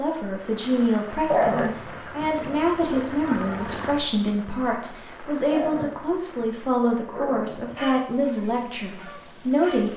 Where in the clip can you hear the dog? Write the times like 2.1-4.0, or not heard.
1.3-3.0, 5.5-7.8.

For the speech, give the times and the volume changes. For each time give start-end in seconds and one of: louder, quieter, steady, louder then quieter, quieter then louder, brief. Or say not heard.
0.0-9.9 steady.